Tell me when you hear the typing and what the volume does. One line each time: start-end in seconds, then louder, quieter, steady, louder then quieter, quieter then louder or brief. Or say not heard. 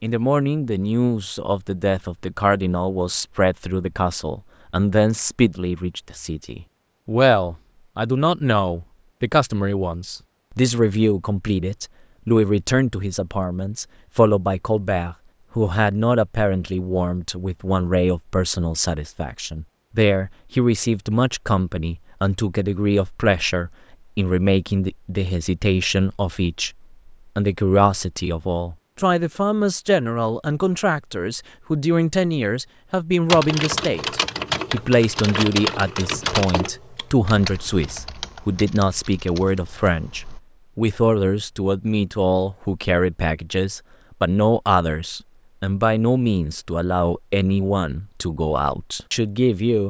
33.2-40.4 quieter.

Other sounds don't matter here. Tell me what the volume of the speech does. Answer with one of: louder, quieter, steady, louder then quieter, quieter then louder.
steady.